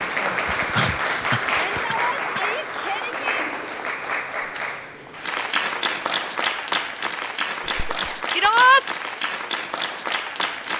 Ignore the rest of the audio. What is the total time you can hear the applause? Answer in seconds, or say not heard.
11 s.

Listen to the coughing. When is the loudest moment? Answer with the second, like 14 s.
1 s.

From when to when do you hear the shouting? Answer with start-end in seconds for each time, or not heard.
1.4-3.5, 8.3-8.8.